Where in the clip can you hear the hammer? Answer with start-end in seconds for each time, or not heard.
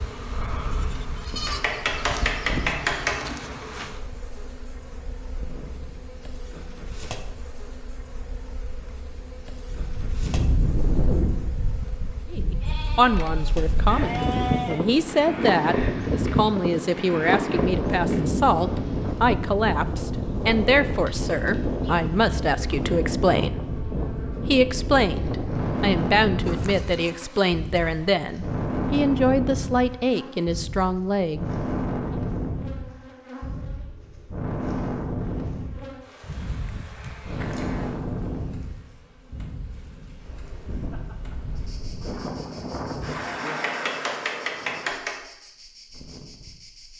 1.4-3.3, 43.5-45.1.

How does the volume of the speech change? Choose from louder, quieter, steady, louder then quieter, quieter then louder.
steady.